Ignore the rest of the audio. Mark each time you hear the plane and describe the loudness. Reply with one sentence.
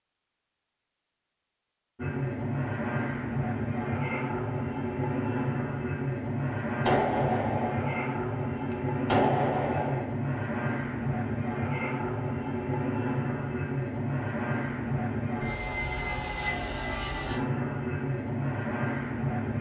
You can hear the plane from 1.9 to 19.5 s, at a steady volume.